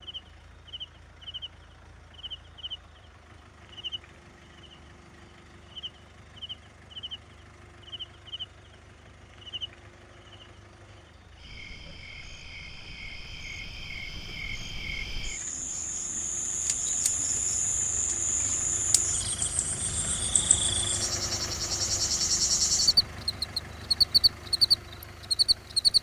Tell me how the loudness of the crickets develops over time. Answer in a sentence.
The volume of the crickets goes up.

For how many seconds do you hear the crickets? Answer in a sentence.
You can hear the crickets for 26 seconds altogether.